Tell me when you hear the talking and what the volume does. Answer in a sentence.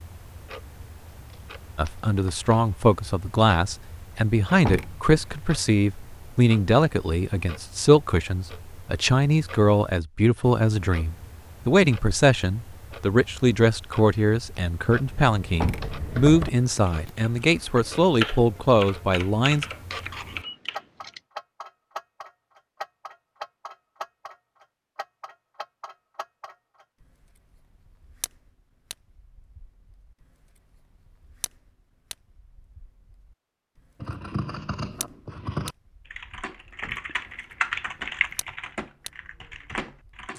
You can hear the talking from 1.8 to 19.6 s, at a steady volume.